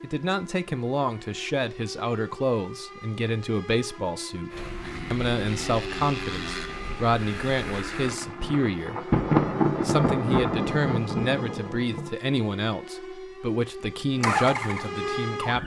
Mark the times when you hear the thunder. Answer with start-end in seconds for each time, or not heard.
8.1-12.1.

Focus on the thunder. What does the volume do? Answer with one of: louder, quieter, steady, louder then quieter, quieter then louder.
louder then quieter.